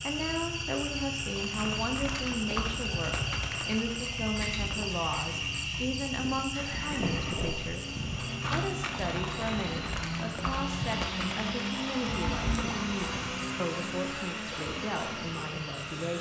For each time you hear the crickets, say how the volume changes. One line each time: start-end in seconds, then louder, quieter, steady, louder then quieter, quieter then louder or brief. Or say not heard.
0.0-16.1 quieter.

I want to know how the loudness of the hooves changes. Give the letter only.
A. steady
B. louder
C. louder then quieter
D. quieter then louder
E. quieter
D.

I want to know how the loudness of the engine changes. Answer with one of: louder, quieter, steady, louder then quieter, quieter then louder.
louder.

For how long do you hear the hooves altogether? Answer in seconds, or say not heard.
12 s.